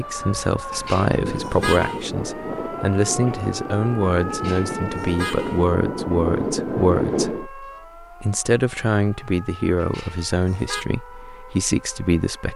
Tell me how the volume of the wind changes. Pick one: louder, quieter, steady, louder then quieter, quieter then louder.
louder.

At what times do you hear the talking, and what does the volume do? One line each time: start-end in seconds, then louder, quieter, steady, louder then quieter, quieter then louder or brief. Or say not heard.
0.0-12.5 steady.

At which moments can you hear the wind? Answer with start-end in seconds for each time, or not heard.
0.0-7.5.